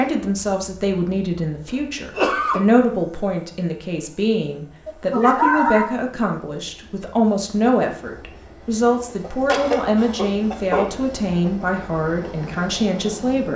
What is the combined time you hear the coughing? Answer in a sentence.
You can hear the coughing for 4 seconds altogether.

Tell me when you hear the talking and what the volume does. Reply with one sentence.
The talking can be heard from 0.0 to 13.5 s, at a steady volume.